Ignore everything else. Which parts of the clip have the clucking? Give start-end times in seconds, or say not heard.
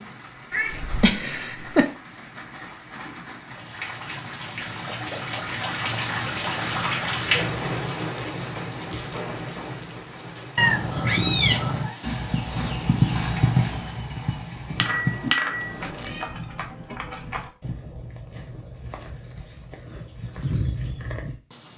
not heard.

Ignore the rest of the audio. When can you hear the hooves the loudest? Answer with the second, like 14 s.
13 s.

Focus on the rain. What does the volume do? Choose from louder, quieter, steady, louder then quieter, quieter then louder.
louder then quieter.